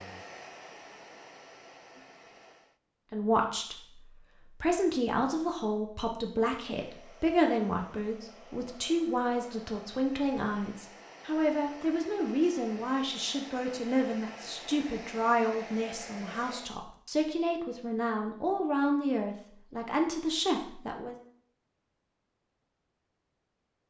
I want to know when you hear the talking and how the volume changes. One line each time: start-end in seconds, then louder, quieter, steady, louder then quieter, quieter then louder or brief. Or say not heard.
3.1-21.1 steady.